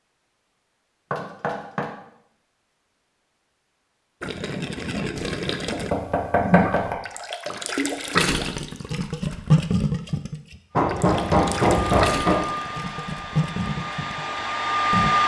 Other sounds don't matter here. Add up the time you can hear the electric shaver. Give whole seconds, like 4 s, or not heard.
not heard.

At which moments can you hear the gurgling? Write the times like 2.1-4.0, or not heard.
4.2-15.1.